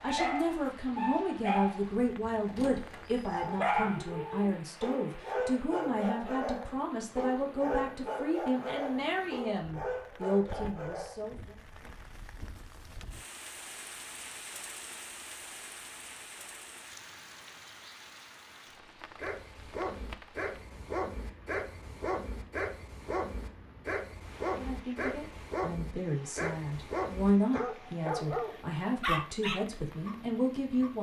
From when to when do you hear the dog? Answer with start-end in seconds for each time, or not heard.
0.0-11.2, 19.2-30.9.